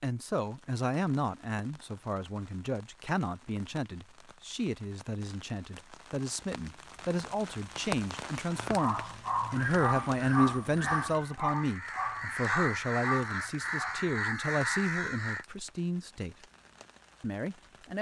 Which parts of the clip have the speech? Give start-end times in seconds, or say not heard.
0.0-16.4, 17.2-17.9.